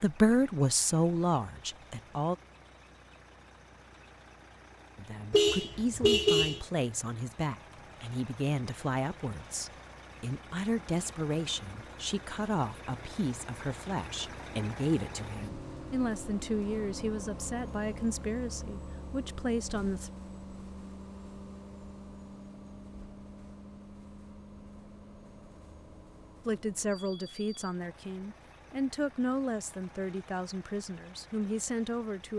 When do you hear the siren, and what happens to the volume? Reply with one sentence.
The siren can't be heard in this clip.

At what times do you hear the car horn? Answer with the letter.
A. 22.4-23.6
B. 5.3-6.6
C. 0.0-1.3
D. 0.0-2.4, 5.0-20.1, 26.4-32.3
B.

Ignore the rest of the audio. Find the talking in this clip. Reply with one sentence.
The talking can be heard from 0.0 to 2.4 s, from 5.0 to 20.1 s and from 26.4 to 32.3 s.